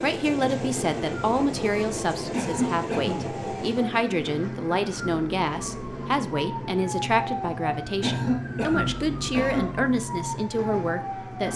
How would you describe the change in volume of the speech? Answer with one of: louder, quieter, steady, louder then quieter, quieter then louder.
steady.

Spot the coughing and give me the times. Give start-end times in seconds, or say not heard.
2.3-3.2, 8.0-9.7.